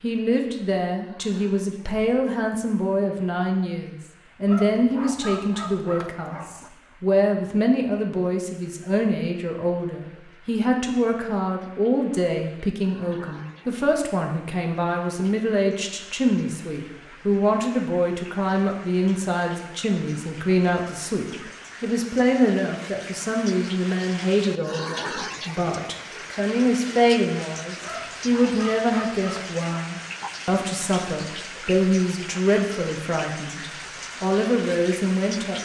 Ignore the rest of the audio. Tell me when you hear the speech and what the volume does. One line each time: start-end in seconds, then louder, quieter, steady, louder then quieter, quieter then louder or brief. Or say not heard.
0.0-35.6 steady.